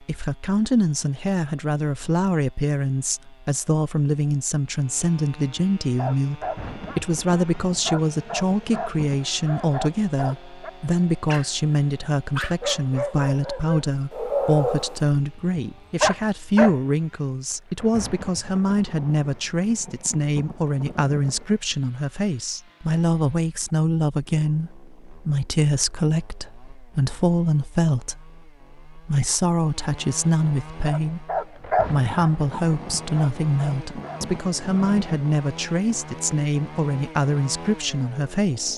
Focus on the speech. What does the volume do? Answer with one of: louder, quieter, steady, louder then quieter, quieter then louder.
steady.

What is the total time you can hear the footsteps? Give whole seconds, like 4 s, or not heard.
not heard.